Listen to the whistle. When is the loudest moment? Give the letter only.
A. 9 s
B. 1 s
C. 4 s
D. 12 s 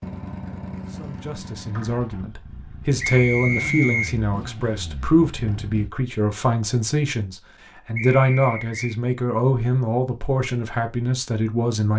C.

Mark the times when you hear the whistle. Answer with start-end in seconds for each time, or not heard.
3.0-4.2, 8.0-8.9.